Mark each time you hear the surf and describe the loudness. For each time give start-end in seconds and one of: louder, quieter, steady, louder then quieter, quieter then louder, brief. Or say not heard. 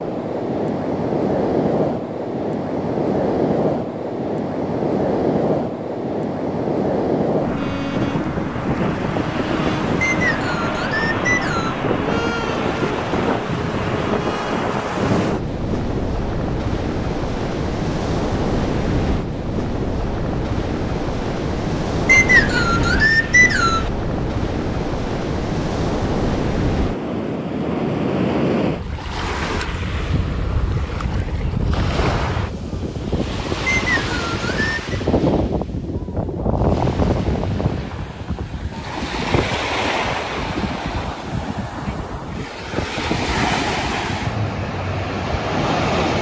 0.0-46.1 steady.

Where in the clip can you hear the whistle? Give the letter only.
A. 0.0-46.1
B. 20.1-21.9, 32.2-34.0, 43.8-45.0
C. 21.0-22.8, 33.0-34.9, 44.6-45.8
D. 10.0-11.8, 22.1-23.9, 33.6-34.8
D.